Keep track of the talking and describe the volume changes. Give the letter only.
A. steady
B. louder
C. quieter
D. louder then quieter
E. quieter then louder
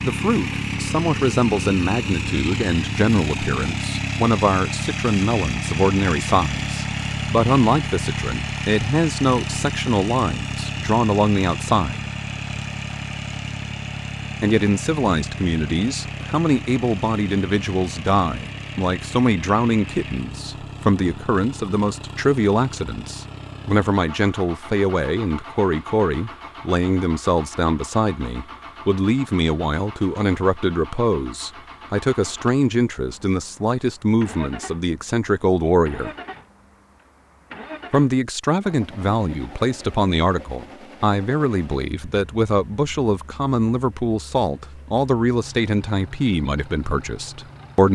A.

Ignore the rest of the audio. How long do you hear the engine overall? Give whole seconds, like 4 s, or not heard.
48 s.